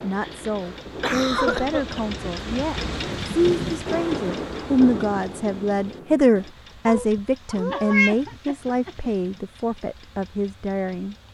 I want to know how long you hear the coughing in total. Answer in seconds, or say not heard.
4 s.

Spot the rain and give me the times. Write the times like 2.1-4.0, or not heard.
0.0-6.5.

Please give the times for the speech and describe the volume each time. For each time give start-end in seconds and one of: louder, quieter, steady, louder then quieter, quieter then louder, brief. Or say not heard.
0.0-11.2 louder then quieter.